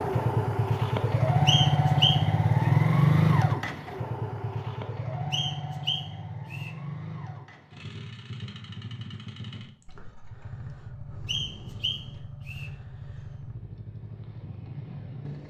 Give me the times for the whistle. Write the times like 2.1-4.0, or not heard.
1.4-2.2, 5.3-6.7, 11.2-12.7.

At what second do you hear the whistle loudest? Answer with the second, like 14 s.
2 s.